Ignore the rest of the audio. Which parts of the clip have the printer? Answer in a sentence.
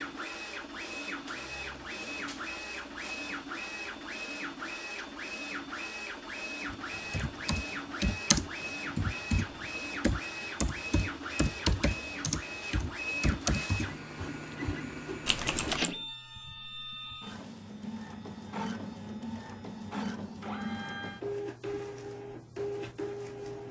You can hear the printer from 0.0 to 23.6 s.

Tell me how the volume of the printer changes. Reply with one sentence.
The loudness of the printer stays about the same.